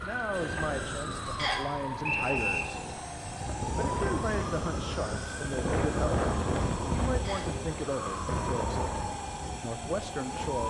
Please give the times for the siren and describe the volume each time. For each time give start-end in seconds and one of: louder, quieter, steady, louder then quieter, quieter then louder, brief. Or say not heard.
0.0-10.6 steady.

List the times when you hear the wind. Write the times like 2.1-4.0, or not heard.
0.1-10.6.